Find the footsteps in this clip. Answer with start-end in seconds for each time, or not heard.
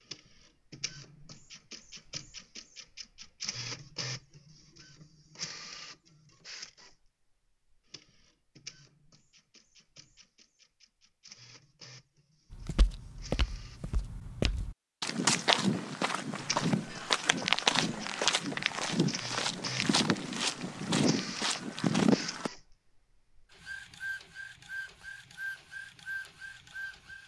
12.5-22.5.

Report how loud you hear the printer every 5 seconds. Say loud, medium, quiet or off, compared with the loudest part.
loud, medium, quiet, loud, loud, loud.